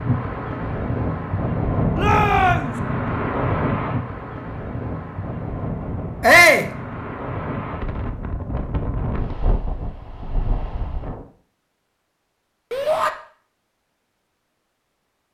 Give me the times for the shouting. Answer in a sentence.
You can hear the shouting from 1.9 to 2.7 s, from 6.2 to 6.7 s and from 12.7 to 13.1 s.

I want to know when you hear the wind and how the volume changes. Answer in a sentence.
The wind can be heard from 0.0 to 11.2 s, getting quieter.